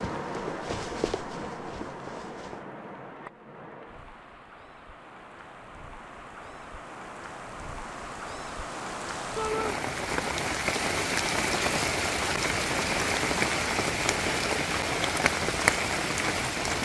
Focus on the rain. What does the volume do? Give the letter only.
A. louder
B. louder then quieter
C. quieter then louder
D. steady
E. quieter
C.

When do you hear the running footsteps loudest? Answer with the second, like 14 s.
1 s.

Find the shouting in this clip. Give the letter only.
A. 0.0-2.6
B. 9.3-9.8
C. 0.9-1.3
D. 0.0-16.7
B.